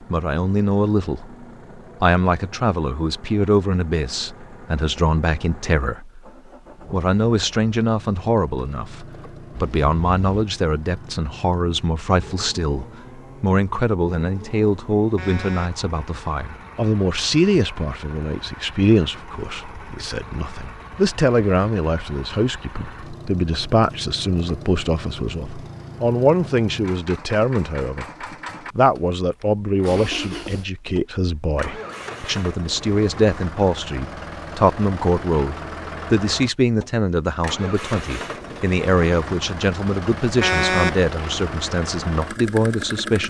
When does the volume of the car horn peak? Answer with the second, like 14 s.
41 s.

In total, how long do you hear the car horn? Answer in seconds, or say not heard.
2 s.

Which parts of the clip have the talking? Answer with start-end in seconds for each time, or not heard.
0.0-6.2, 6.9-43.2.